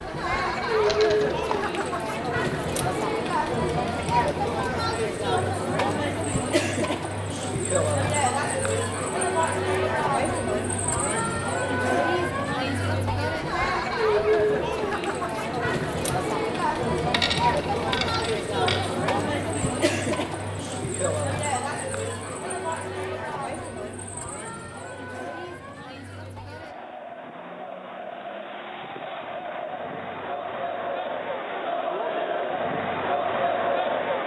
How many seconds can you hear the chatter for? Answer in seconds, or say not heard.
34 s.